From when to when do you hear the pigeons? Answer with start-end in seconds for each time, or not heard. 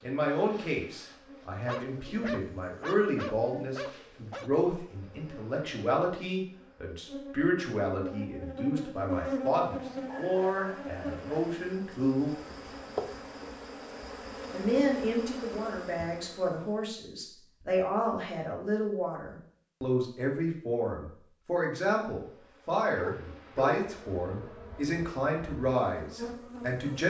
not heard.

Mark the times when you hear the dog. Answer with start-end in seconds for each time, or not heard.
1.6-4.5, 9.7-11.6, 22.9-23.8.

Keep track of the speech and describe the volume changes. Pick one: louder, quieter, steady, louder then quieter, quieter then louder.
steady.